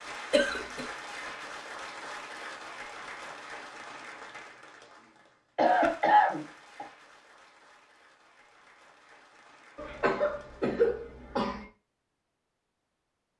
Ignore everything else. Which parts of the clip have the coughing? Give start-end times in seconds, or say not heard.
0.3-0.8, 5.5-6.8, 9.8-11.7.